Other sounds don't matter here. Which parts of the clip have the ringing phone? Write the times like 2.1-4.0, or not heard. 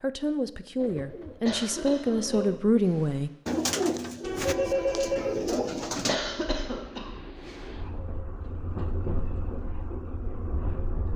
4.3-5.3.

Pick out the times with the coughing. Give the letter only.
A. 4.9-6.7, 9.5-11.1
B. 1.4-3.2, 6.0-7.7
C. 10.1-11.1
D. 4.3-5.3
B.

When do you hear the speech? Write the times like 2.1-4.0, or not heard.
0.0-3.3.